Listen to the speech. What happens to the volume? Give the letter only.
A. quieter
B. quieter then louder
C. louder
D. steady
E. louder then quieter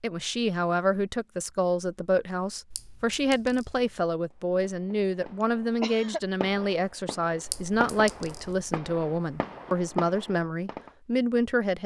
D.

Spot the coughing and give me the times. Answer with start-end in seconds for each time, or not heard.
5.4-6.2.